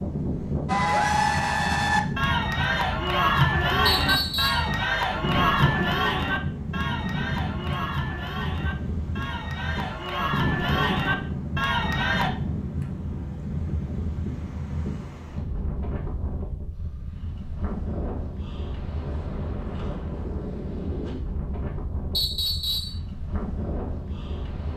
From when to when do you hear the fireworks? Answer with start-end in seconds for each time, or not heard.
not heard.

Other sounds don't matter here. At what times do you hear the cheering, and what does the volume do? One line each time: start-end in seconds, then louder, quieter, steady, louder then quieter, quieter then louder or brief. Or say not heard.
0.7-12.3 quieter then louder.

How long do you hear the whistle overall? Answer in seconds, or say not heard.
2 s.